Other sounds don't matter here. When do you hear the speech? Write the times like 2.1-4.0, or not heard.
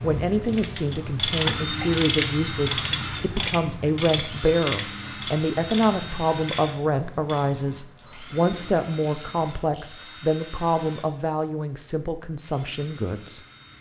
0.0-13.4.